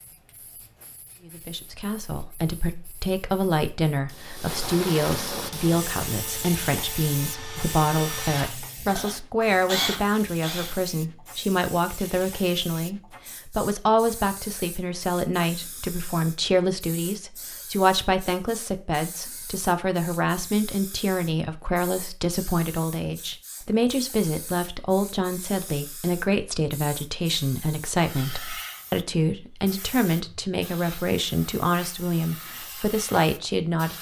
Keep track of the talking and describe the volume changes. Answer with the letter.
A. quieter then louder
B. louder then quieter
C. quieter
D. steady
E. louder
D.